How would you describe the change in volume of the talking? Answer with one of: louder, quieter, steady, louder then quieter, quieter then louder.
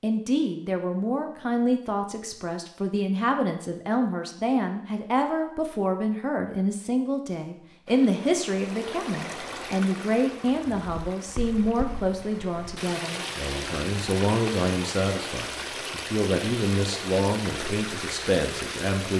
steady.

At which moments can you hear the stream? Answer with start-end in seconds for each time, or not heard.
7.8-19.1.